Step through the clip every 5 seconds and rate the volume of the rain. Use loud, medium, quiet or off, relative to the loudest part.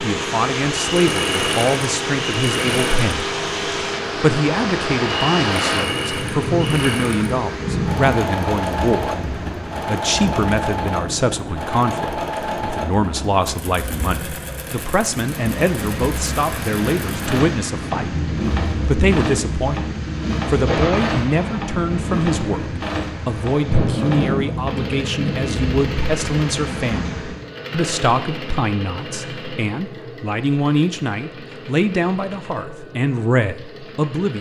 loud, loud, medium, loud, loud, loud, off.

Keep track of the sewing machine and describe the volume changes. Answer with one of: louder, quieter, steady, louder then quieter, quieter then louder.
quieter.